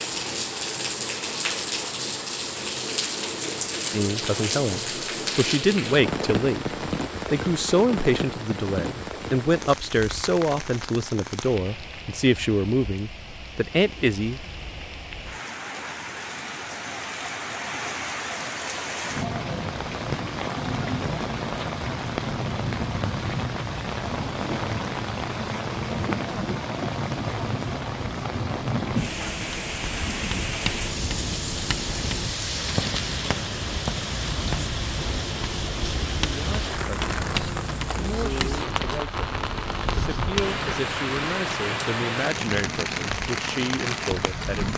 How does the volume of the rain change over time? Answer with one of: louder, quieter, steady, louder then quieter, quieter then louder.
quieter then louder.